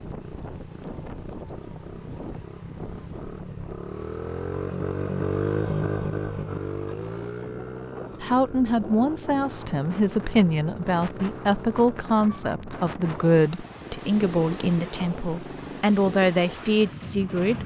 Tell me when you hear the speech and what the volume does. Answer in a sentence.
You can hear the speech from 8.2 to 17.6 s, at a steady volume.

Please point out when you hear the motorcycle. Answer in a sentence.
You can hear the motorcycle from 0.0 to 17.6 s.